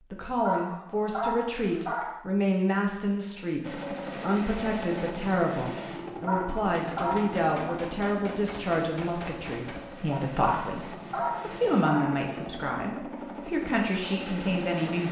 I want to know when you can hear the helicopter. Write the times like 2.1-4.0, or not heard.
3.6-15.0.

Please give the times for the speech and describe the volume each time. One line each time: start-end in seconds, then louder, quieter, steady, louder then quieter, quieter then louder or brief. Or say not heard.
0.1-15.0 steady.